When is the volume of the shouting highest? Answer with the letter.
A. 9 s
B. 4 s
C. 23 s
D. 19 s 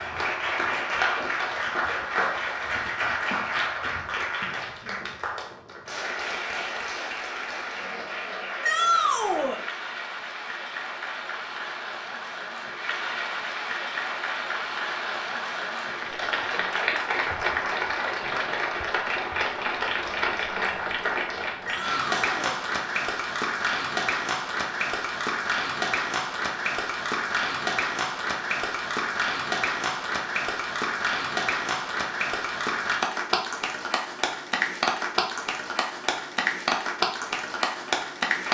A.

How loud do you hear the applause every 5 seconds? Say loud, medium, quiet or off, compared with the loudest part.
loud, medium, medium, loud, loud, loud, loud, loud.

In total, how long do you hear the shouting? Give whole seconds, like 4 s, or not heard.
2 s.